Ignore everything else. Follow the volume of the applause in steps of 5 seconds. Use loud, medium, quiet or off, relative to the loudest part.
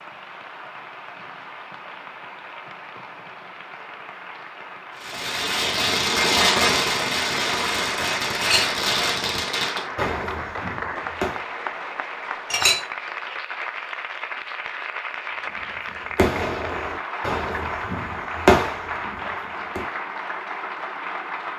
medium, loud, loud, loud, loud.